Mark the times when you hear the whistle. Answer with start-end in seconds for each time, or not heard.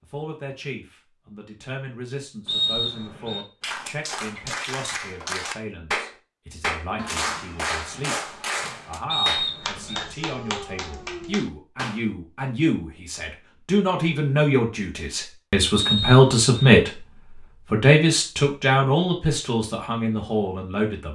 2.5-3.5, 9.1-10.1, 15.8-16.7.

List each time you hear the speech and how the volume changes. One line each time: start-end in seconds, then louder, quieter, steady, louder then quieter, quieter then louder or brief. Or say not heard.
0.0-21.1 louder.